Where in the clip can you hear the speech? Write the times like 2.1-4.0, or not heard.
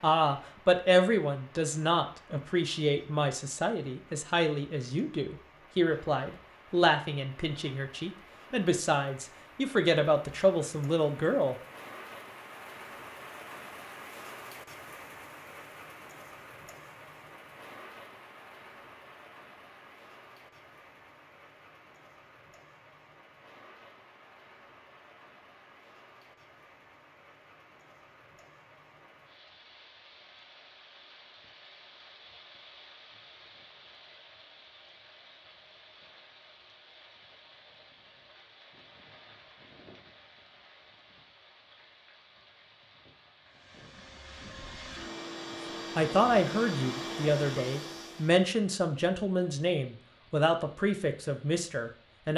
0.0-11.6, 46.0-52.3.